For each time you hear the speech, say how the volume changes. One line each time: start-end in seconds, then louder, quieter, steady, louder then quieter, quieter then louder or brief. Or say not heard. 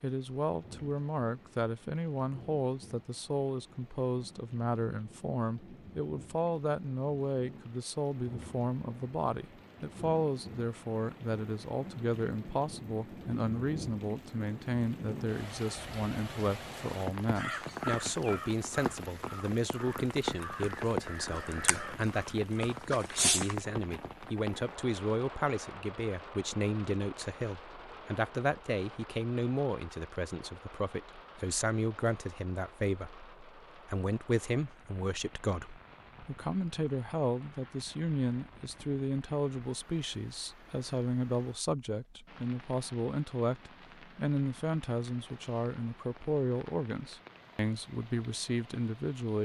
0.0-49.4 steady.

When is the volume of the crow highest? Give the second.
23 s.